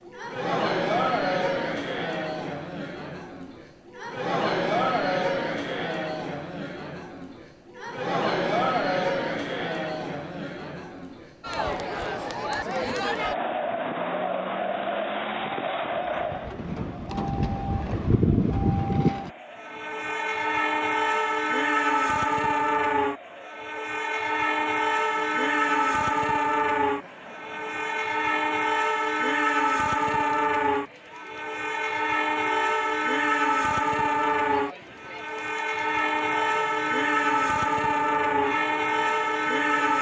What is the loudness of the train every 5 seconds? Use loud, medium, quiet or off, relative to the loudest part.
off, off, off, loud, loud, loud, loud, loud.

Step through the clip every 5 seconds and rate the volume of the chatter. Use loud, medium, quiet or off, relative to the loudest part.
loud, loud, loud, medium, quiet, quiet, quiet, quiet.